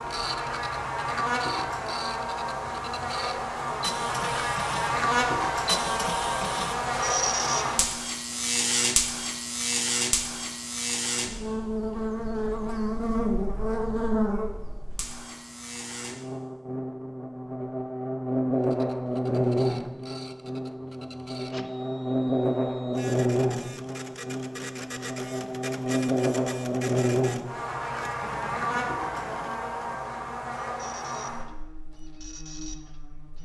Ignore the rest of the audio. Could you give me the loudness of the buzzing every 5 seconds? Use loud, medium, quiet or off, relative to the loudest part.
loud, loud, loud, loud, loud, loud, medium.